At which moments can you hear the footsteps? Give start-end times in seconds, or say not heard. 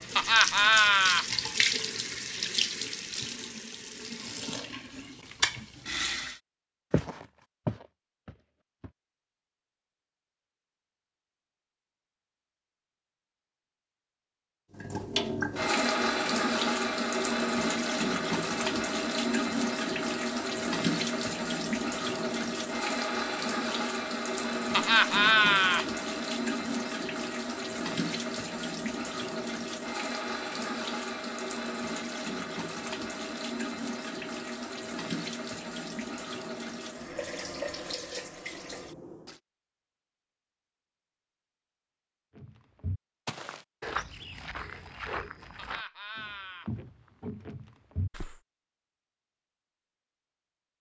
6.9-8.9, 42.4-48.4.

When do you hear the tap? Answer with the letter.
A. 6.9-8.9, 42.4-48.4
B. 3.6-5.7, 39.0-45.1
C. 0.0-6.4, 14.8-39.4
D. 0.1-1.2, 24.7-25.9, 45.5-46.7
C.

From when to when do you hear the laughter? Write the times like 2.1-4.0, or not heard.
0.1-1.2, 24.7-25.9, 45.5-46.7.